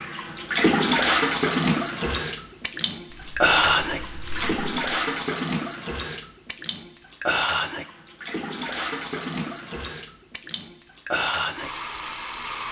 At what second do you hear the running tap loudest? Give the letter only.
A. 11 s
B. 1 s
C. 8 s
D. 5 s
B.